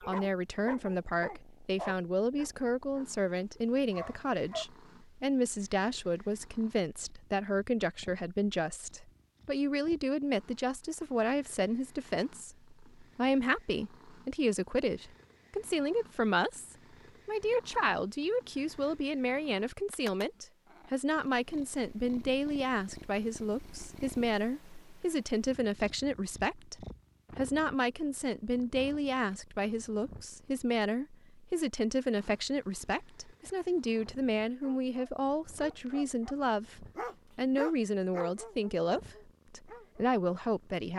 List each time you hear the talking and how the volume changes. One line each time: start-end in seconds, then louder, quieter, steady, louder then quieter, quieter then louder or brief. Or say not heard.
0.1-40.9 steady.